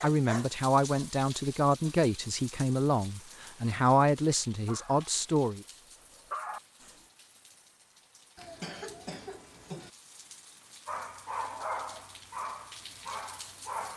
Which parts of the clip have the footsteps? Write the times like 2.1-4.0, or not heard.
not heard.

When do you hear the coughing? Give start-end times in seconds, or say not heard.
8.3-9.9.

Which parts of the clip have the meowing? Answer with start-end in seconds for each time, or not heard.
not heard.